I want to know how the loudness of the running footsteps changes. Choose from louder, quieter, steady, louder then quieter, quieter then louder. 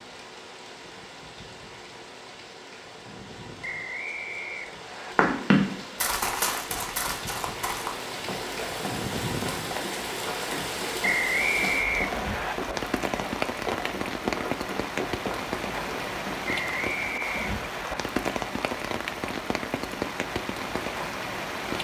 quieter.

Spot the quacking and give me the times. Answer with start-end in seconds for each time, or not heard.
not heard.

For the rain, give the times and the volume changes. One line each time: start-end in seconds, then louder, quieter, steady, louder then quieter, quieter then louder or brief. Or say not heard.
0.0-21.8 louder.